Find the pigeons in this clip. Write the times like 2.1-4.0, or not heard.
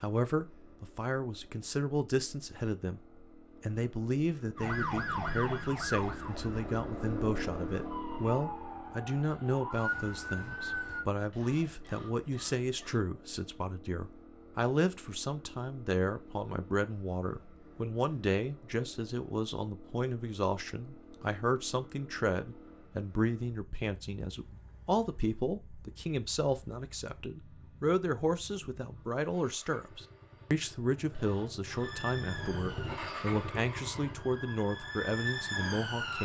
not heard.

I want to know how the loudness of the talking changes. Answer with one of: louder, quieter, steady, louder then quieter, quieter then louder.
steady.